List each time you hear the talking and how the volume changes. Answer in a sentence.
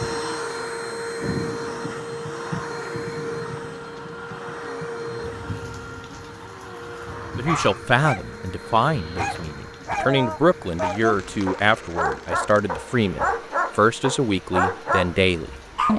You can hear the talking from 7.3 to 15.9 s, at a steady volume.